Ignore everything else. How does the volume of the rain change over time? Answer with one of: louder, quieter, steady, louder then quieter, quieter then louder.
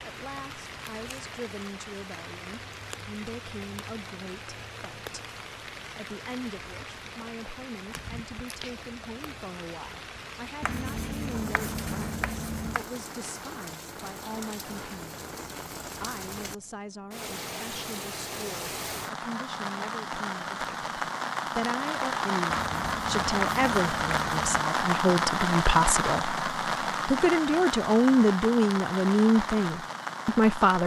louder.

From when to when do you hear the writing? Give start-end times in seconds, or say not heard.
10.6-12.8, 22.5-24.6.